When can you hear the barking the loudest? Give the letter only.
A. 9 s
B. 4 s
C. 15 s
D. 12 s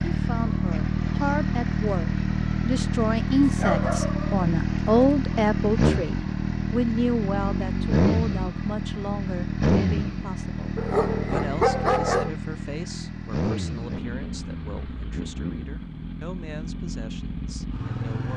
D.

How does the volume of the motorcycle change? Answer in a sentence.
The volume of the motorcycle goes down.